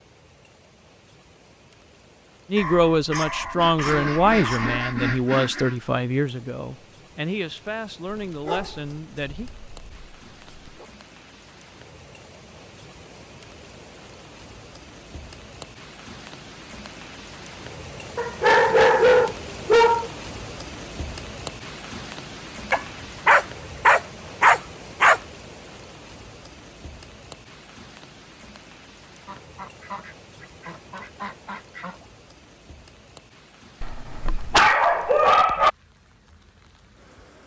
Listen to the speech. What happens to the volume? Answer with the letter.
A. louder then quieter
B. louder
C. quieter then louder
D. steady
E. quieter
E.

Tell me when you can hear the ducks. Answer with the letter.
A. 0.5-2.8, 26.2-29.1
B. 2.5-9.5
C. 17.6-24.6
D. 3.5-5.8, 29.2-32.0
D.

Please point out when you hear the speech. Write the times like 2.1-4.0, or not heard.
2.5-9.5.